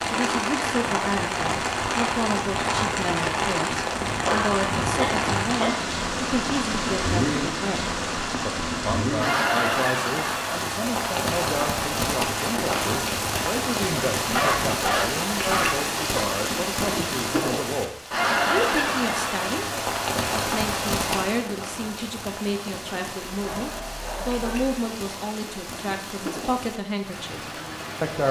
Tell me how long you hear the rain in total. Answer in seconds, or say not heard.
28 s.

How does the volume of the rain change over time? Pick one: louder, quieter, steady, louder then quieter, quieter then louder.
quieter.